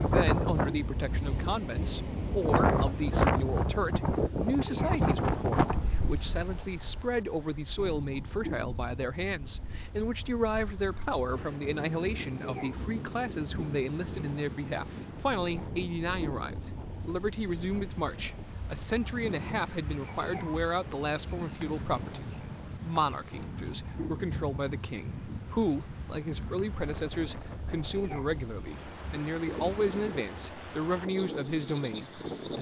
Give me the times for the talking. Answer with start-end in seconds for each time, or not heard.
0.0-32.5.